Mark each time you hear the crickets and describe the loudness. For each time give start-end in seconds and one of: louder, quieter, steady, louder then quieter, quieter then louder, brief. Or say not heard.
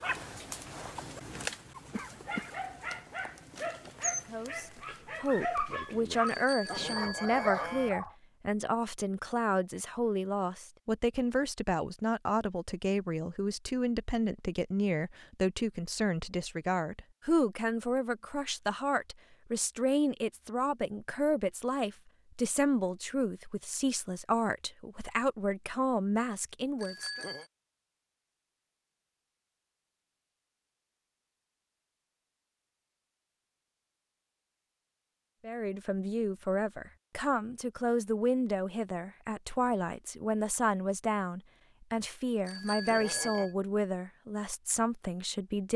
not heard.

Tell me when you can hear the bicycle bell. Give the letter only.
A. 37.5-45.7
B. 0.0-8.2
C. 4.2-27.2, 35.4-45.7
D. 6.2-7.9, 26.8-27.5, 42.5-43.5
D.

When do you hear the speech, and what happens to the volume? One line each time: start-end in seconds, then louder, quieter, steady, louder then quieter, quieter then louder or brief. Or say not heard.
4.2-27.2 steady
35.4-45.7 steady.